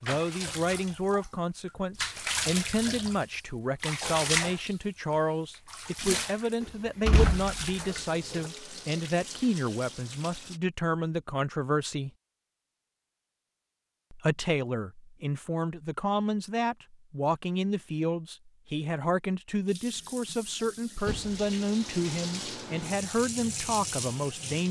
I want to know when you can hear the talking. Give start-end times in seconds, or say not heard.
0.0-12.1, 14.1-24.6.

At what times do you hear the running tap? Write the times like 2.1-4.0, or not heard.
0.0-10.6, 19.6-24.6.